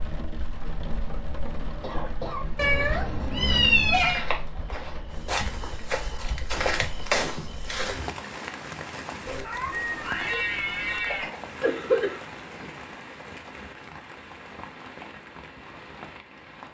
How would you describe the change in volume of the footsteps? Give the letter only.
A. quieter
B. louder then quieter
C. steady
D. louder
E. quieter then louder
D.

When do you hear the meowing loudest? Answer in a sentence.
The loudest moment of the meowing is at 4 seconds.